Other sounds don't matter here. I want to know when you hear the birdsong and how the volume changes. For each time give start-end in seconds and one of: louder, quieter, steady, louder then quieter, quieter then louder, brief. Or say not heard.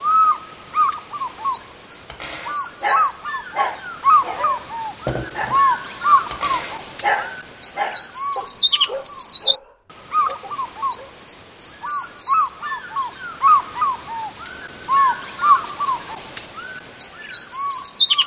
0.0-18.2 steady.